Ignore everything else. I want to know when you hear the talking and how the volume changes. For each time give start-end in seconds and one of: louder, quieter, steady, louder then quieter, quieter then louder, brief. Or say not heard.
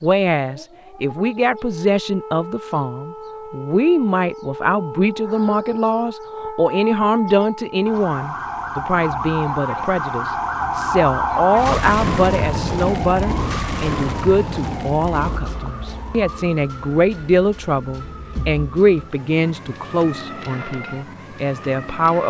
0.0-22.2 steady.